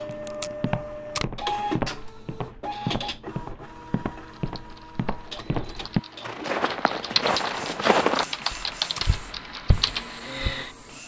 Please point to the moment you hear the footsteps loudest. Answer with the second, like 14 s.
8 s.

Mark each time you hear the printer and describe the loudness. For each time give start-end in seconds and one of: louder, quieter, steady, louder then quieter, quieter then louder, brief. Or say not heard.
0.0-11.0 quieter.